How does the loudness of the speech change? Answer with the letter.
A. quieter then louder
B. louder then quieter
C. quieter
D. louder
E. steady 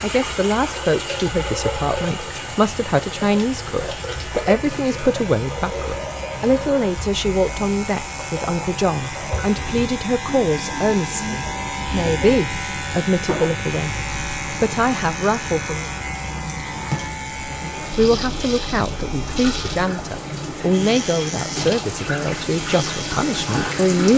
E.